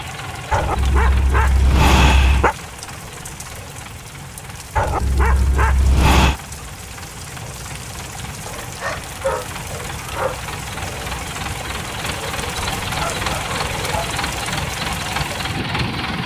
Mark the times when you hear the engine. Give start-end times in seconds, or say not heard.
0.0-16.2.